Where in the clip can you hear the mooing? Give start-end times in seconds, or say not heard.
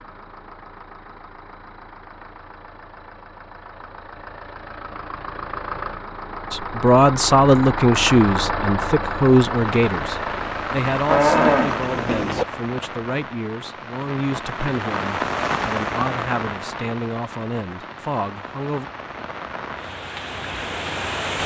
11.1-12.4.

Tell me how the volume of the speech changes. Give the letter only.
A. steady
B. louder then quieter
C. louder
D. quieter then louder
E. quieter
E.